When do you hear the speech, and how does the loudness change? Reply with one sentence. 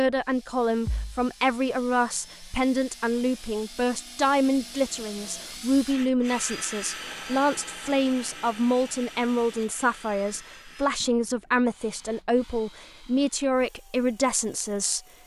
The speech can be heard from 0.0 to 15.0 s, at a steady volume.